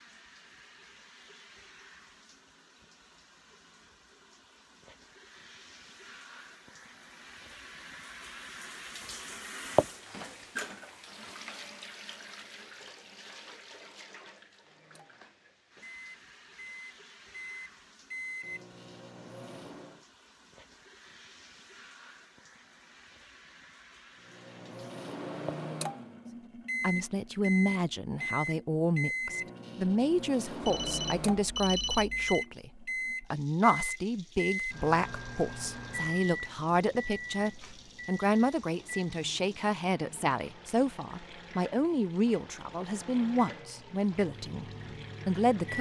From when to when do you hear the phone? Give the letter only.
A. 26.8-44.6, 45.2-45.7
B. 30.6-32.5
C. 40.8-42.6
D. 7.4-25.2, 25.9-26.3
B.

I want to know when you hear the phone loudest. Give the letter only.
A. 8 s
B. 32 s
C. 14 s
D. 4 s
B.